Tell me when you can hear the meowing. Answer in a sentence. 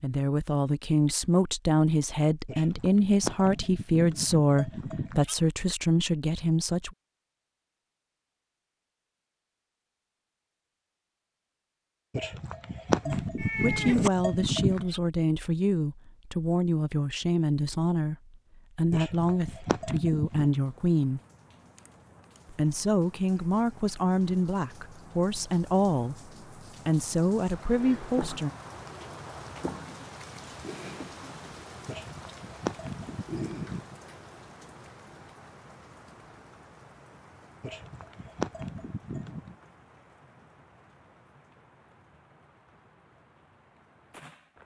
The meowing can be heard from 13.1 to 14.1 s.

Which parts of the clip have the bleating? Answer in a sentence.
The bleating can be heard from 2.5 to 5.3 s, from 12.2 to 15.0 s, from 18.9 to 20.5 s, from 31.9 to 34.0 s and from 37.6 to 39.5 s.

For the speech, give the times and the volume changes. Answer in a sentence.
The speech can be heard from 0.0 to 7.0 s, at a steady volume; from 13.1 to 21.2 s, at a steady volume; and from 22.5 to 28.5 s, at a steady volume.